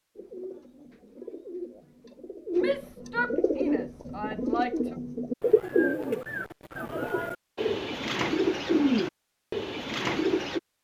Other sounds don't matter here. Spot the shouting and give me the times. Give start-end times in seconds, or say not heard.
2.5-5.0.